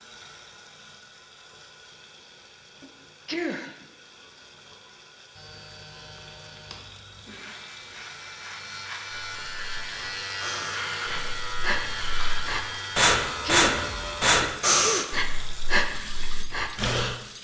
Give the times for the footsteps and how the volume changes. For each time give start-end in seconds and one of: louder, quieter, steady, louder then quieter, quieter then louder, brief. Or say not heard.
not heard.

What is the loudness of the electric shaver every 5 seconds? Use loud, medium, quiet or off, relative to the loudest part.
off, medium, loud, off.